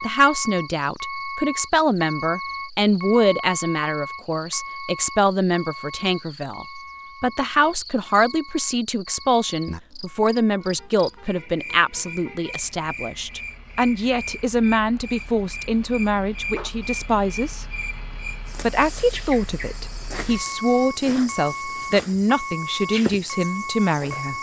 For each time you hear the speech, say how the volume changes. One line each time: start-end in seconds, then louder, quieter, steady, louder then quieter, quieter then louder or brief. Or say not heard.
0.0-17.6 steady
18.6-24.3 steady.